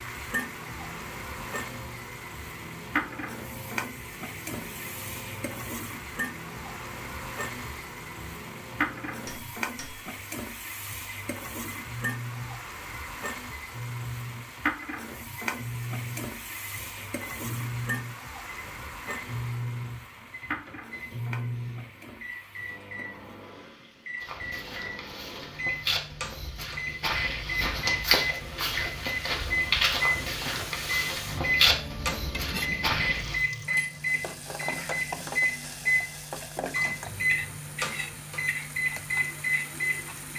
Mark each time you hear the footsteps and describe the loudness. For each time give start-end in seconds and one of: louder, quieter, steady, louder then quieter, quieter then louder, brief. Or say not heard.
24.2-33.5 louder.